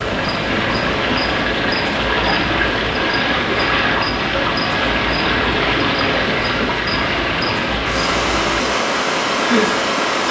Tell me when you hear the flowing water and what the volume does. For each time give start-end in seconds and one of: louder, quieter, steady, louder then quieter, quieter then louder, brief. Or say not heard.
0.0-10.2 steady.